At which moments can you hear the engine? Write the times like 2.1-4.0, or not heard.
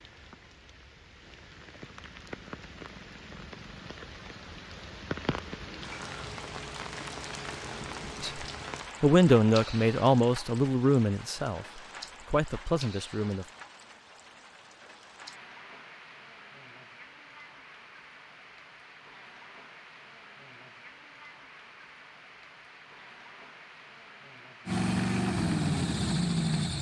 24.6-26.7.